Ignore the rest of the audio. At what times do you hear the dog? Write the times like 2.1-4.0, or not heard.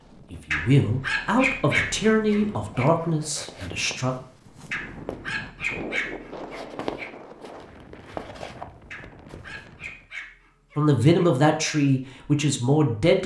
0.5-2.9, 4.7-7.1, 8.9-11.2.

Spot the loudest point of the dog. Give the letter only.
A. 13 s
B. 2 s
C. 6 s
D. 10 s
B.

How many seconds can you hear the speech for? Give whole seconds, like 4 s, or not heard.
6 s.